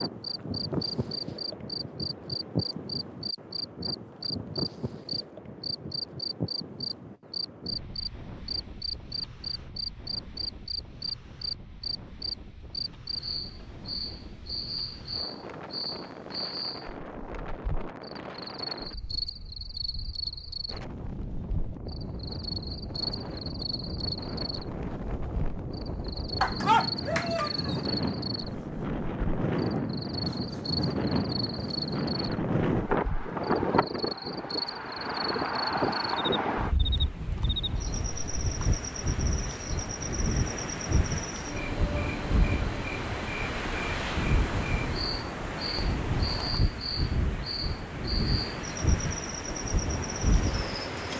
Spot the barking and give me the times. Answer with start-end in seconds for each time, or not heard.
26.4-27.8.